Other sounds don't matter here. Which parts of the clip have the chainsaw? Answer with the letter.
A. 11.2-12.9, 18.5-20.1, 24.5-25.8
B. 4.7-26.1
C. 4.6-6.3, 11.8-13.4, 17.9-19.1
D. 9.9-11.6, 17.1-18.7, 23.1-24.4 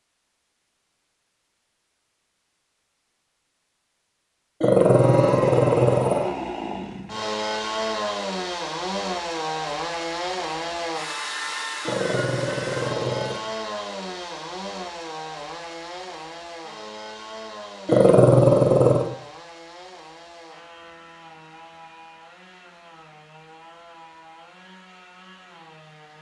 B.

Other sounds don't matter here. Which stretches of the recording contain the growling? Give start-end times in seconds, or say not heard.
4.6-6.3, 11.8-13.4, 17.9-19.1.